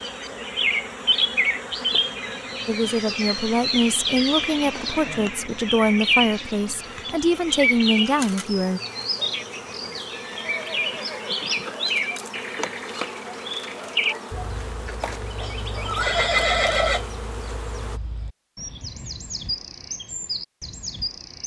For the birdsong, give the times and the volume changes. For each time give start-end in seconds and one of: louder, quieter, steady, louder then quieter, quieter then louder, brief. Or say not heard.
0.0-21.4 quieter.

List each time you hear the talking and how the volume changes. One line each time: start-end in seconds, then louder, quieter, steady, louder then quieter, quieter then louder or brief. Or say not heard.
2.6-8.8 steady.